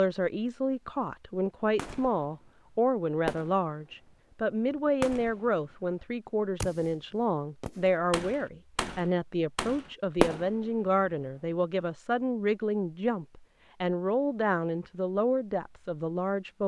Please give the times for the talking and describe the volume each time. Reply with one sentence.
The talking can be heard from 0.0 to 16.6 s, at a steady volume.